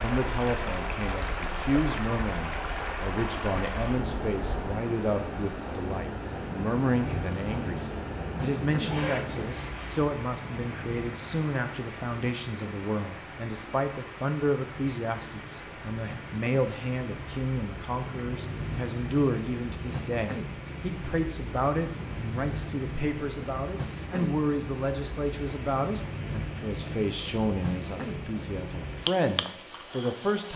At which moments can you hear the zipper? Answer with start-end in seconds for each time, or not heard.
8.8-10.0.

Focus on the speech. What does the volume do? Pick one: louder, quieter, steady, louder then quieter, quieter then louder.
steady.